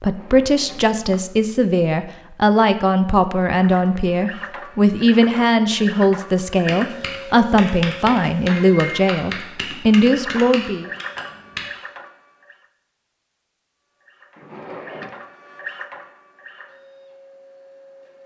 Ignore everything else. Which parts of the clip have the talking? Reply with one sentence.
You can hear the talking from 0.0 to 10.9 s.